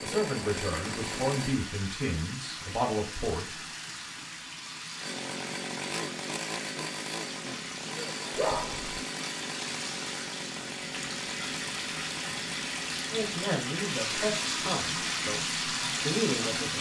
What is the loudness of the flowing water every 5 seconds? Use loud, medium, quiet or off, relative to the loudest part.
medium, medium, loud, loud.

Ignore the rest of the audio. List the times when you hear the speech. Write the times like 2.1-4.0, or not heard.
0.0-3.6, 13.1-16.7.